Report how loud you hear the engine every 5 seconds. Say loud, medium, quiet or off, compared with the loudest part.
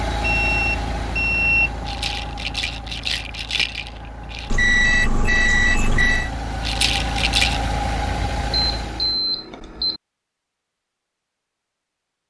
loud, loud, off.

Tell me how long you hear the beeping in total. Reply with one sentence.
The beeping can be heard for 5 seconds in total.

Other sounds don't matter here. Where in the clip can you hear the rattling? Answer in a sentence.
The rattling can be heard from 1.9 to 4.6 s and from 6.6 to 7.6 s.